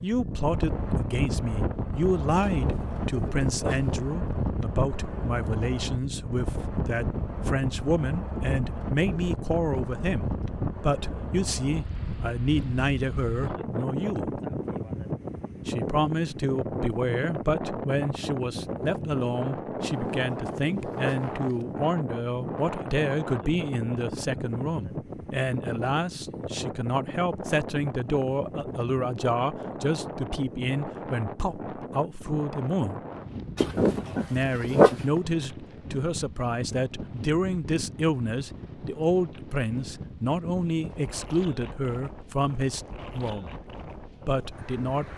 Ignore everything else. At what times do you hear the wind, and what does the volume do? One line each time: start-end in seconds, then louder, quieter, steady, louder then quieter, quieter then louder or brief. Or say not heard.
0.0-45.1 quieter.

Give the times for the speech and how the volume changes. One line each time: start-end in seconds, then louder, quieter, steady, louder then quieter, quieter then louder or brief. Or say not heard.
0.0-14.4 steady
15.7-33.0 steady
34.3-43.5 steady
44.2-45.1 brief.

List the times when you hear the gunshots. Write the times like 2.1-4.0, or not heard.
not heard.